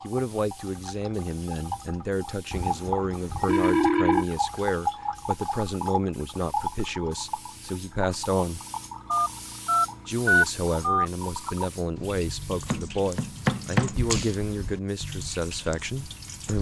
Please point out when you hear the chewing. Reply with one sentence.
You can't hear the chewing here.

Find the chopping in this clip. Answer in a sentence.
The chopping can be heard from 12.7 to 14.3 s.